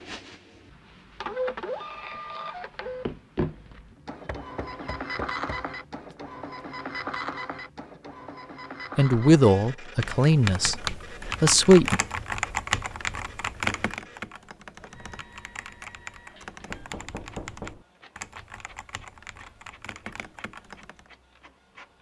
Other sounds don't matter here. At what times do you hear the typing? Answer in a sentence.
You can hear the typing from 10.0 to 21.1 s.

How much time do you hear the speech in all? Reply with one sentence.
The speech can be heard for 3 seconds in total.